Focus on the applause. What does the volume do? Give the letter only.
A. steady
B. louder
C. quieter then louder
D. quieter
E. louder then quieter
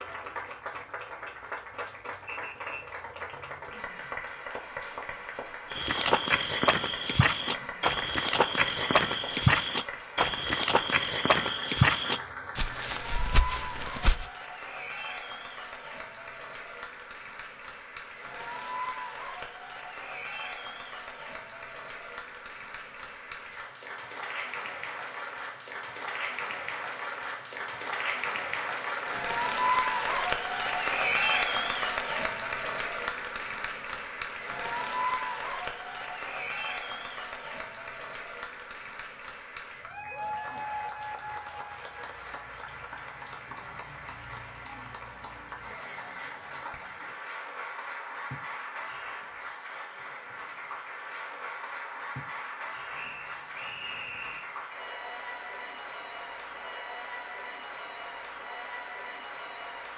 E.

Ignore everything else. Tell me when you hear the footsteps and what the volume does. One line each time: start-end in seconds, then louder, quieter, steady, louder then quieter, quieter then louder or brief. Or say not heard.
5.7-14.3 quieter.